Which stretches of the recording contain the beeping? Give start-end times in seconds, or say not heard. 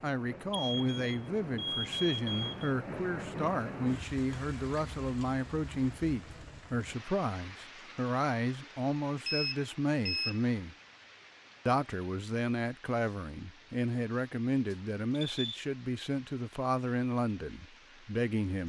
0.5-2.7, 9.2-10.4, 14.7-15.6.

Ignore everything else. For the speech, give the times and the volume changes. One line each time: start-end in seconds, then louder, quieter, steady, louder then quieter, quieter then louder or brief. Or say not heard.
0.0-10.8 steady
11.7-18.6 steady.